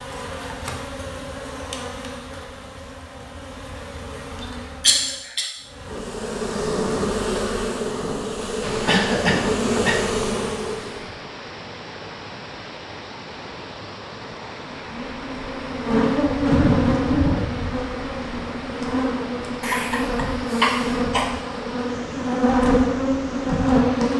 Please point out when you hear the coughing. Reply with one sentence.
You can hear the coughing from 4.4 to 5.5 s, from 8.8 to 10.1 s and from 19.6 to 21.3 s.